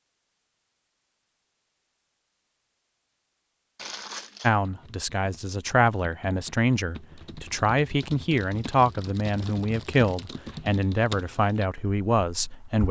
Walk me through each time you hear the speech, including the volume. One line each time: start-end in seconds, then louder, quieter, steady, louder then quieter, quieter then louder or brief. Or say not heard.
4.4-12.8 steady.